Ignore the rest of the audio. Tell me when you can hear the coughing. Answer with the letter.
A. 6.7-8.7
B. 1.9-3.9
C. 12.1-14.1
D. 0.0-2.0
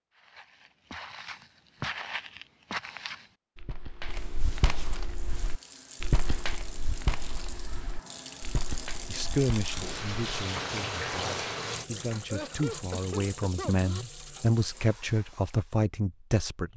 C.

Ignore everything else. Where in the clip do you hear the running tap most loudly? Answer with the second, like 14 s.
11 s.